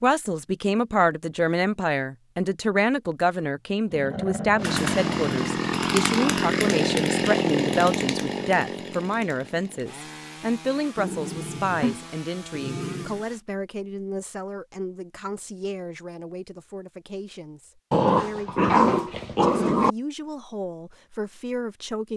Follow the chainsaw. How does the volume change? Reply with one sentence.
The volume of the chainsaw goes down.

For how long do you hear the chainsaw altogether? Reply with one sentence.
You can hear the chainsaw for 9 seconds altogether.